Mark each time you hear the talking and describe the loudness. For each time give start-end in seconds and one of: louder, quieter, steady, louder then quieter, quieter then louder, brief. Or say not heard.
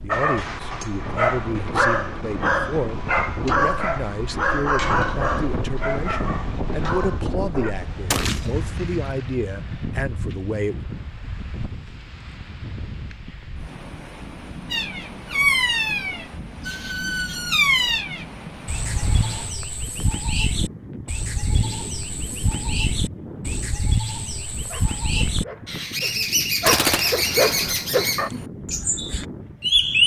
0.0-10.8 steady.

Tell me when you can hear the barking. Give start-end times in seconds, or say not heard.
0.1-7.8, 24.6-28.3.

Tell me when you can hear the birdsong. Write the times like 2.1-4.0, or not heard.
14.7-30.0.